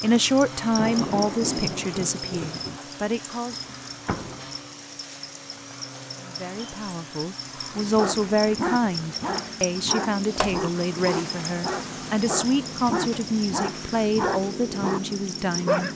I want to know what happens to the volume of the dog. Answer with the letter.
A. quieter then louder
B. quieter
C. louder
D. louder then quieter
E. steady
E.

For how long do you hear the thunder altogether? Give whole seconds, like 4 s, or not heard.
2 s.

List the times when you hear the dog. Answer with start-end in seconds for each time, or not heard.
8.0-15.9.